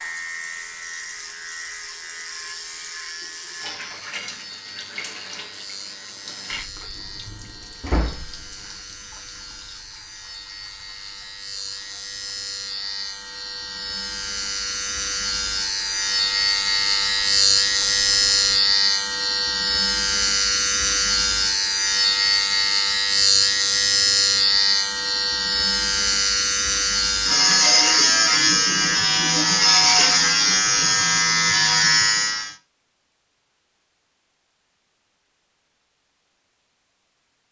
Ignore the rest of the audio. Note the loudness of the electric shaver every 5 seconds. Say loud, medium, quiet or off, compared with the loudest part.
quiet, quiet, quiet, loud, loud, loud, loud, off.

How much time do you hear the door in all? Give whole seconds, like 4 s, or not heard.
2 s.